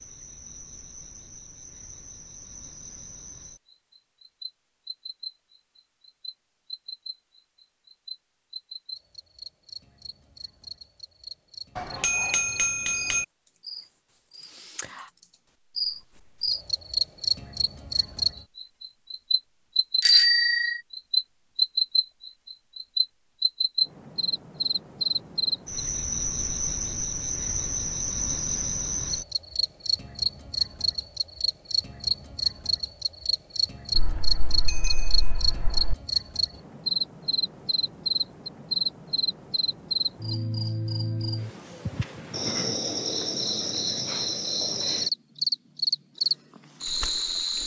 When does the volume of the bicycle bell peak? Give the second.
20 s.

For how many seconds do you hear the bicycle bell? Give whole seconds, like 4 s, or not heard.
4 s.